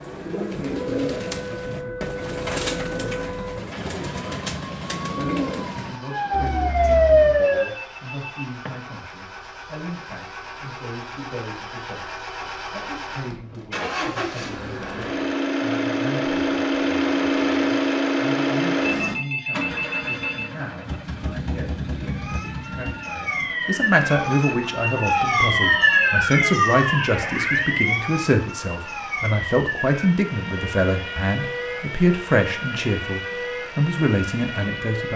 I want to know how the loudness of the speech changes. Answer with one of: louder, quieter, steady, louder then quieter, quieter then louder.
louder.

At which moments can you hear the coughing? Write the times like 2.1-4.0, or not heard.
not heard.